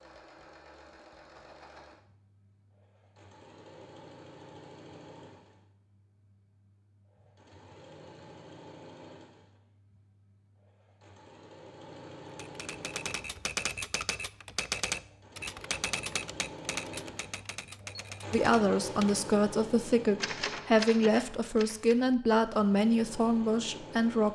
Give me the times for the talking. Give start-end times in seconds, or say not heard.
18.3-24.3.